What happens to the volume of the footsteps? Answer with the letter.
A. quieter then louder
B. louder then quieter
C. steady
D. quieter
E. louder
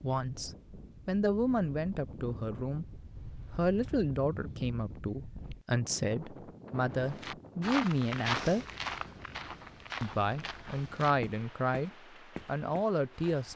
D.